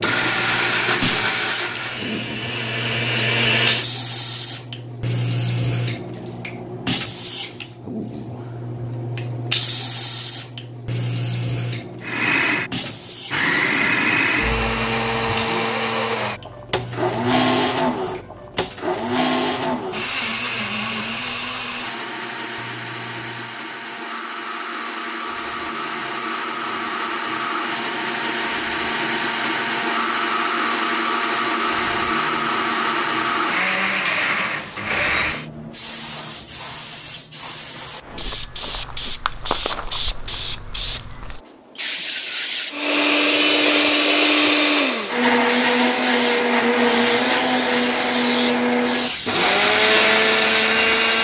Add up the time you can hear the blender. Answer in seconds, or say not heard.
36 s.